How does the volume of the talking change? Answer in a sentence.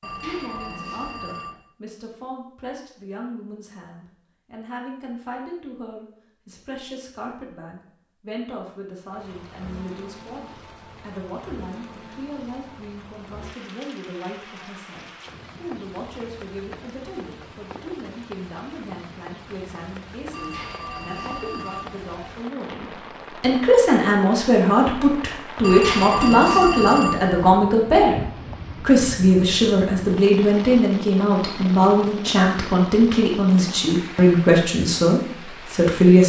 The volume of the talking goes up.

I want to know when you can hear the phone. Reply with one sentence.
The phone can be heard from 0.0 to 1.6 s, from 20.3 to 22.4 s and from 25.6 to 27.6 s.